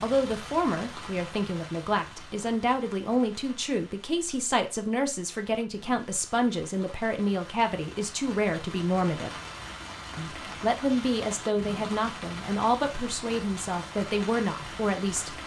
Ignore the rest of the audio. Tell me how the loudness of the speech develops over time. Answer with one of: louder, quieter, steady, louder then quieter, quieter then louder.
steady.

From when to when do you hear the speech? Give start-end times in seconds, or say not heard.
0.0-9.3, 10.2-15.3.